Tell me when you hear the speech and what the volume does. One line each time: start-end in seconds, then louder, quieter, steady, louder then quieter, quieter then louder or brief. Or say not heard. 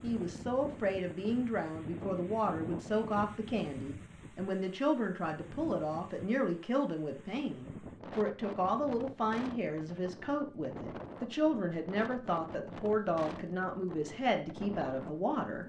0.0-15.6 steady.